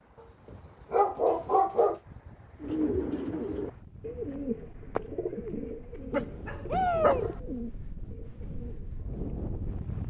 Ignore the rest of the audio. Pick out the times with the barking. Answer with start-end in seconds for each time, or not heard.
0.5-2.0, 6.1-7.3.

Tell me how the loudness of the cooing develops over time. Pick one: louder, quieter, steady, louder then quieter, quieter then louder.
quieter.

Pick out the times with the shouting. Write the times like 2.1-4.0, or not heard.
6.7-7.3.